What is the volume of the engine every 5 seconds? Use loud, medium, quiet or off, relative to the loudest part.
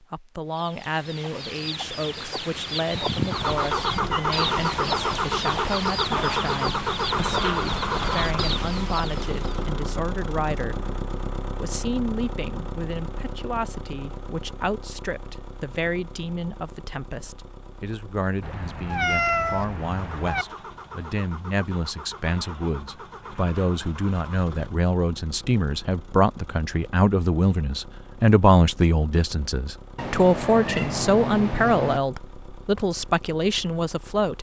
loud, loud, medium, quiet, quiet, quiet, quiet.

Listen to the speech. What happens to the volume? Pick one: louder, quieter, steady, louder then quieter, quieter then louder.
louder.